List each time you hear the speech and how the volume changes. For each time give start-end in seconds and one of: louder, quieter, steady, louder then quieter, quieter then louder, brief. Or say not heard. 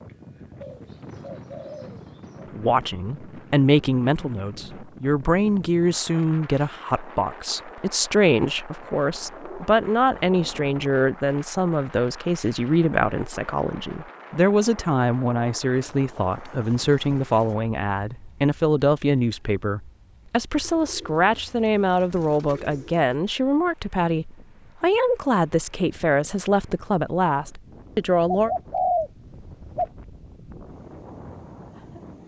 2.5-28.5 steady.